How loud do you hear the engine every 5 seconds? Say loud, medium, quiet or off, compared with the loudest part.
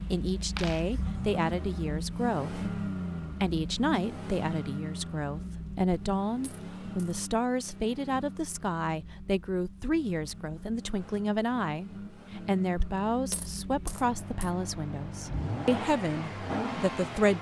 loud, medium, medium, loud.